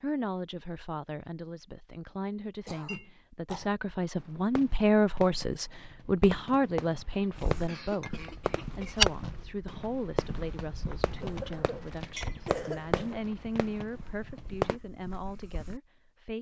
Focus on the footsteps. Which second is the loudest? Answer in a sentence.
The volume of the footsteps peaks at 9 seconds.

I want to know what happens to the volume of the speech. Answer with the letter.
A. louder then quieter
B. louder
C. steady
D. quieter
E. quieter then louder
A.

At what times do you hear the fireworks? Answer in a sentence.
The fireworks can be heard from 4.2 to 14.8 s.